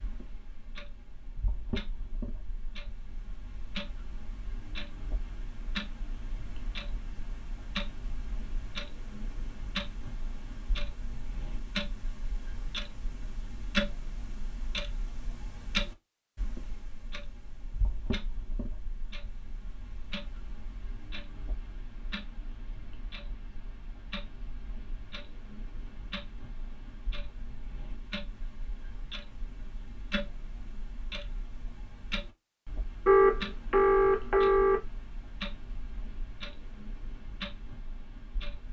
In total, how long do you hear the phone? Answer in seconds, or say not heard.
2 s.